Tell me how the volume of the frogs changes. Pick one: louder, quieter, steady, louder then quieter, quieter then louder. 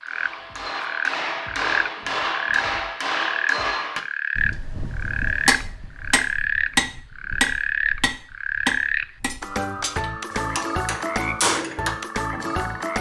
steady.